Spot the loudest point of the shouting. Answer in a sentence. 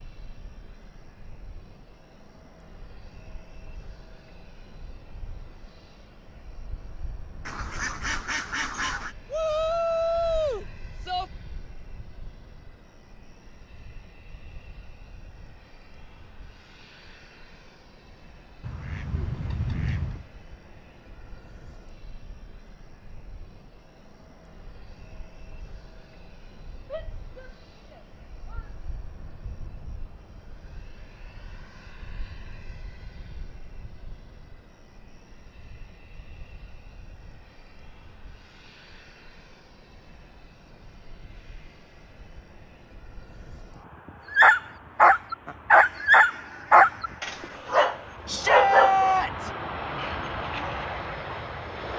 The loudest moment of the shouting is at 49 seconds.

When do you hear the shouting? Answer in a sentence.
You can hear the shouting from 9.3 to 11.3 s, from 26.9 to 28.7 s and from 48.2 to 49.5 s.